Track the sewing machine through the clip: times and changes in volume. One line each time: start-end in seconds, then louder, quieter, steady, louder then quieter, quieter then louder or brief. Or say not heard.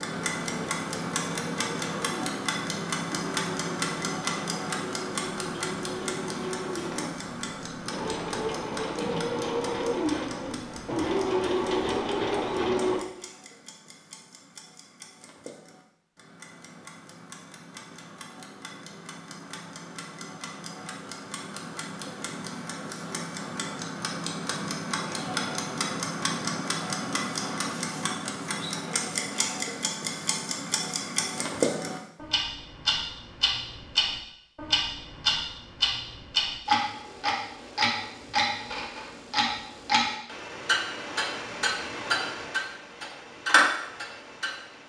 0.0-13.0 louder.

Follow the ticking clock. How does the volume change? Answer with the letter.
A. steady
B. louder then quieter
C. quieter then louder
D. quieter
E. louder
C.